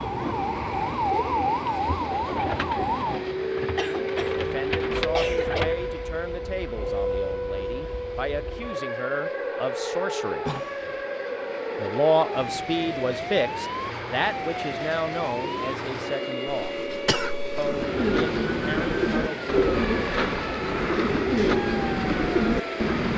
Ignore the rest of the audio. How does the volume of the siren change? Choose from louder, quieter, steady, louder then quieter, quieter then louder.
quieter.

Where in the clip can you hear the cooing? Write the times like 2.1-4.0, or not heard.
0.0-5.9, 17.5-23.1.